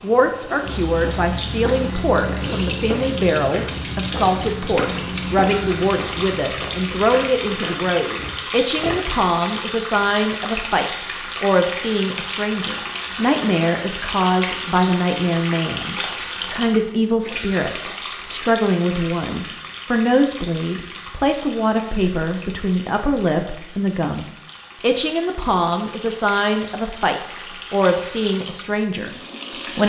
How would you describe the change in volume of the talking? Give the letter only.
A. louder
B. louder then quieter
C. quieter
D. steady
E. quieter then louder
D.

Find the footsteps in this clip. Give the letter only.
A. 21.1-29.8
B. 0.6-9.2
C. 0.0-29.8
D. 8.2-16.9
B.